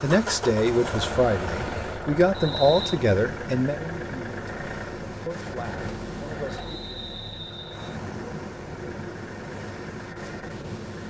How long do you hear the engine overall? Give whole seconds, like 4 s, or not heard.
11 s.